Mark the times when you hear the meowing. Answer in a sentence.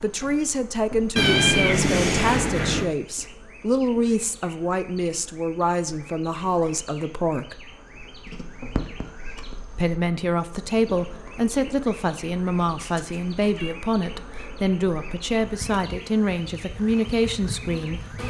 You can hear the meowing from 1.1 to 2.9 s, from 8.2 to 9.6 s and from 12.8 to 13.8 s.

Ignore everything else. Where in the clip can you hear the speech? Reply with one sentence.
You can hear the speech from 0.0 to 7.5 s and from 9.8 to 18.1 s.